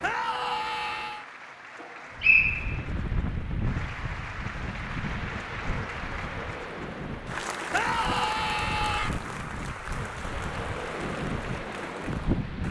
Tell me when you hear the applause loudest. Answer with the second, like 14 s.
8 s.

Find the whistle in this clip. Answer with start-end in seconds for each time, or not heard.
1.8-2.9.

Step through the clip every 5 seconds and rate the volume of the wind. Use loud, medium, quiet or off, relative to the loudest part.
loud, medium, loud.